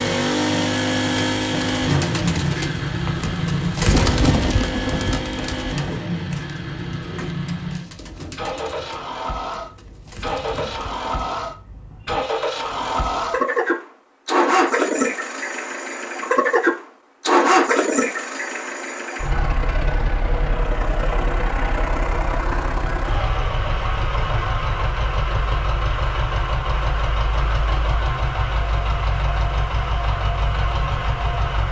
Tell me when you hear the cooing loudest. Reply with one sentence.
The volume of the cooing peaks at 4 seconds.